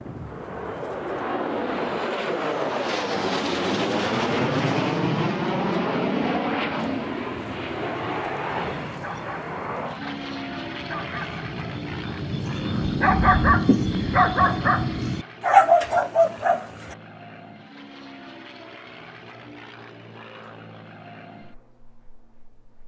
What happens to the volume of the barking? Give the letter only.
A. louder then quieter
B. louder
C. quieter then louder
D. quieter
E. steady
B.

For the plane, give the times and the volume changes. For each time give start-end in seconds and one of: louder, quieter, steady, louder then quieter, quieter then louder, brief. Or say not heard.
0.0-22.8 quieter.